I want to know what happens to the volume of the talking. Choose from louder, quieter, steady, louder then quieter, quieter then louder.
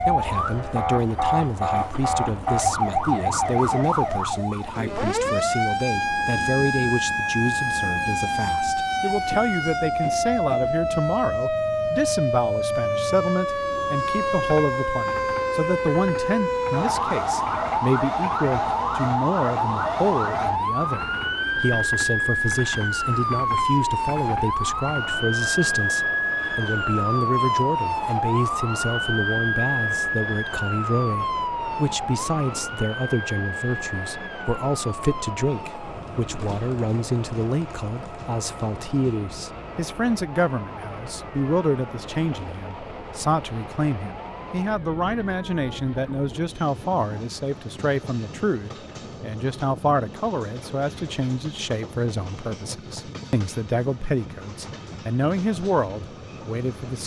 steady.